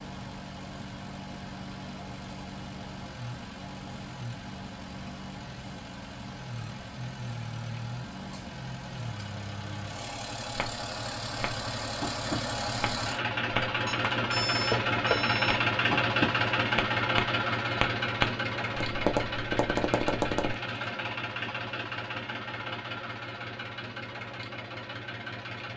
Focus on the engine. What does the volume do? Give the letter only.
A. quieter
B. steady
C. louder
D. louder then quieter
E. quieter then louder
D.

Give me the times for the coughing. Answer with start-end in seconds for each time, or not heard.
not heard.